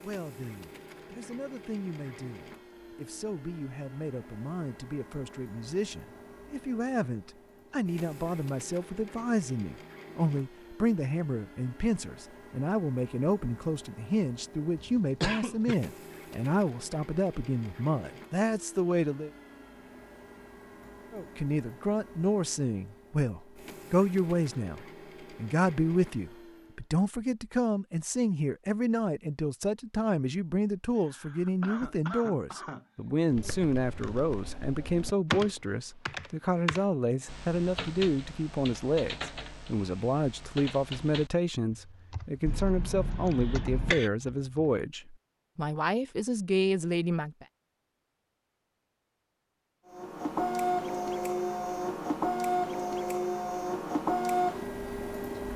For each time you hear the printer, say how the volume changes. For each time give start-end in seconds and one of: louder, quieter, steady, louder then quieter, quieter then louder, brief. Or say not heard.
0.0-26.9 steady
49.9-55.5 steady.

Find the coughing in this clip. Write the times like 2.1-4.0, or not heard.
14.8-15.8, 30.9-33.1, 42.5-44.1.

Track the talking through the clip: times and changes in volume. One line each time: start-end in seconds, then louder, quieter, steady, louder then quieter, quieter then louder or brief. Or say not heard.
0.0-19.3 louder
21.1-47.5 steady.